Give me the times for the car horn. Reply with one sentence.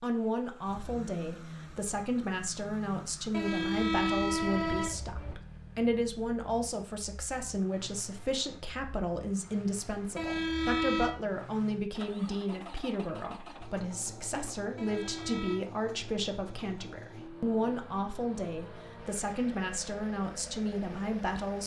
The car horn can be heard from 3.3 to 5.3 s, from 10.2 to 11.2 s and from 14.8 to 15.6 s.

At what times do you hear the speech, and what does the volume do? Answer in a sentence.
You can hear the speech from 0.0 to 21.6 s, at a steady volume.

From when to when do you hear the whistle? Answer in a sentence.
You can't hear the whistle here.